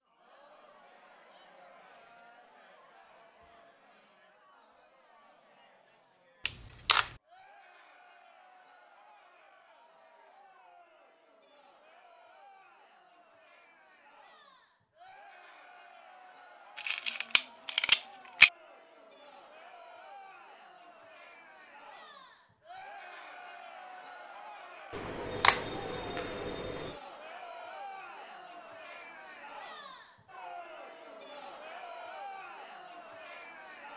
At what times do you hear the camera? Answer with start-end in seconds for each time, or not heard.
6.5-7.1, 16.8-18.5, 24.9-26.9.